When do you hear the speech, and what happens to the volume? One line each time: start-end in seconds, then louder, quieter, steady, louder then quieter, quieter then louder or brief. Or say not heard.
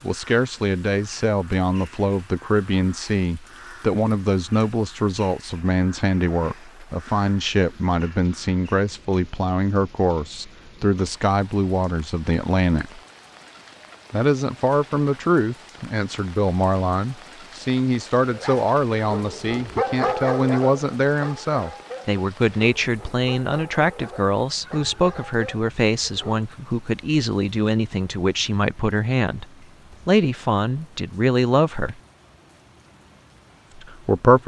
0.0-13.0 steady
14.1-32.0 steady
33.8-34.4 brief.